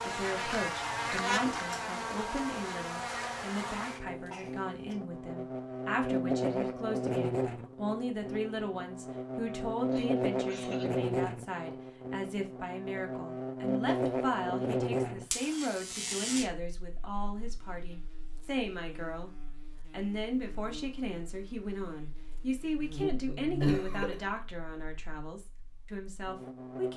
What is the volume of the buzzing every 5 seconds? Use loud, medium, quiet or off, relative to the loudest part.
loud, loud, loud, medium, medium, quiet.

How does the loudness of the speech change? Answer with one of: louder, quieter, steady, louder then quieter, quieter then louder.
steady.